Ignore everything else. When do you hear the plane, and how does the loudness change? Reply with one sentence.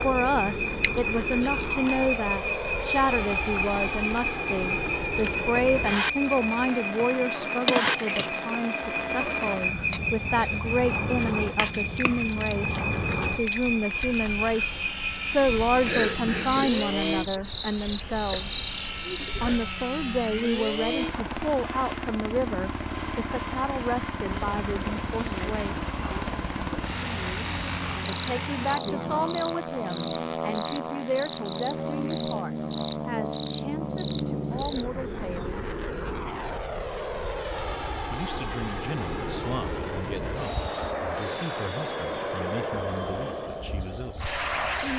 You can hear the plane from 0.0 to 44.9 s, at a steady volume.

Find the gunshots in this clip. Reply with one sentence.
The gunshots can't be heard in this clip.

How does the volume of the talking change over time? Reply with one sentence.
The loudness of the talking goes down.